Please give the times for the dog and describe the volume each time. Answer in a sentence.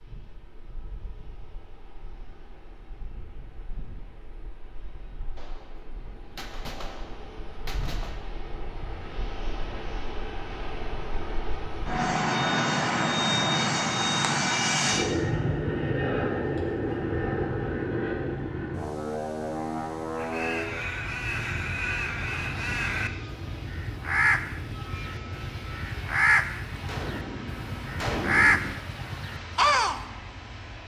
The dog can't be heard in this clip.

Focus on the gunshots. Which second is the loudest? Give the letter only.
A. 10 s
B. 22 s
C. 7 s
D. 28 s
D.